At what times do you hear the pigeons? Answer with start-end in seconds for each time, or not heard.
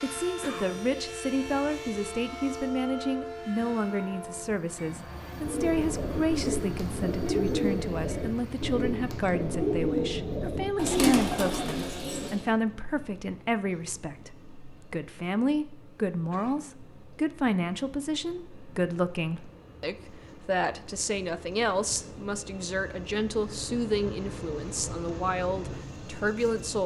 5.4-12.4.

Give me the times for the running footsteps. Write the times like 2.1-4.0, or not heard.
not heard.